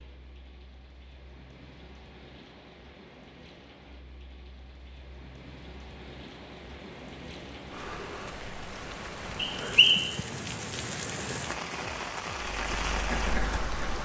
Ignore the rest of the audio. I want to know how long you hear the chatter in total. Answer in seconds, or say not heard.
not heard.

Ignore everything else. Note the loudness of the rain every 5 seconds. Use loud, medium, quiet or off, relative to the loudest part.
quiet, medium, loud.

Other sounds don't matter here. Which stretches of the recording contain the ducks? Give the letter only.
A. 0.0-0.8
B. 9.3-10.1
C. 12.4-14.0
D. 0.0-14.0
C.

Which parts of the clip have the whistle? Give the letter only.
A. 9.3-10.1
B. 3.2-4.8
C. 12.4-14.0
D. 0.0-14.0
A.